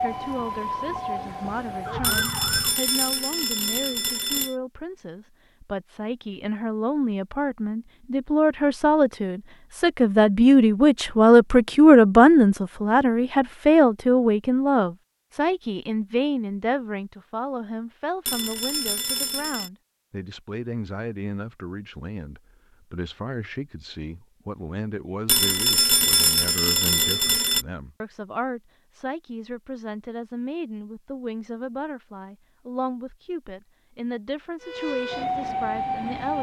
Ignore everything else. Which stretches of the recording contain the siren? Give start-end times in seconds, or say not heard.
0.0-2.8, 34.6-36.3.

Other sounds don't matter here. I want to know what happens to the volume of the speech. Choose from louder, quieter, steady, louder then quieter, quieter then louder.
louder then quieter.